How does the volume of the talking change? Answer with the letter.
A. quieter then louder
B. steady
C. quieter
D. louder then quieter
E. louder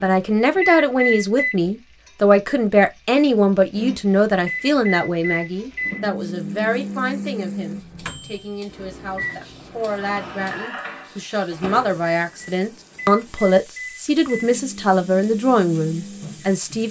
A.